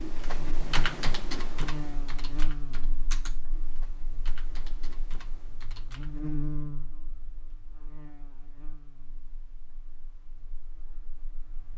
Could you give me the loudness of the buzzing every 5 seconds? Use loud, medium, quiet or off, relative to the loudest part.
loud, loud, quiet.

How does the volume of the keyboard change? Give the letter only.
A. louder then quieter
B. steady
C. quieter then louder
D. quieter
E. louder
D.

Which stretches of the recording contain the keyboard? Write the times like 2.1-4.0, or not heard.
0.0-6.2.